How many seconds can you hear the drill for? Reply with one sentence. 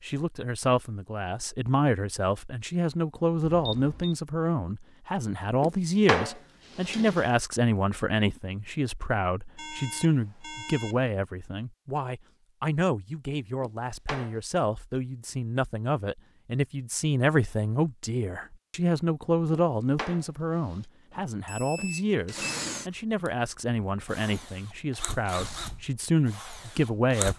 You can hear the drill for 6 seconds altogether.